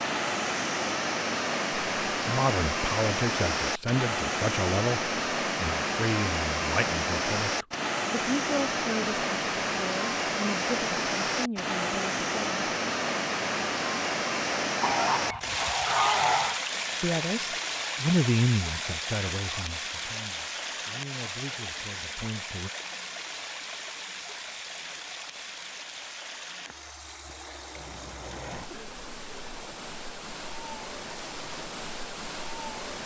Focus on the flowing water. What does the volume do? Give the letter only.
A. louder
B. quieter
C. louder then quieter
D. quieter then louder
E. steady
B.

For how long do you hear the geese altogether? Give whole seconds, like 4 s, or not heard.
2 s.